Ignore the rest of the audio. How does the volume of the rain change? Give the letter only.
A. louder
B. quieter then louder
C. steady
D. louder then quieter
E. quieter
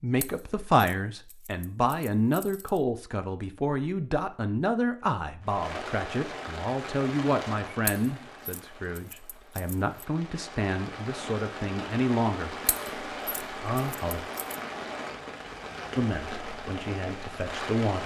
B.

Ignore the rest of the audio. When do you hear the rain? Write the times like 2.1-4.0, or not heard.
5.4-18.0.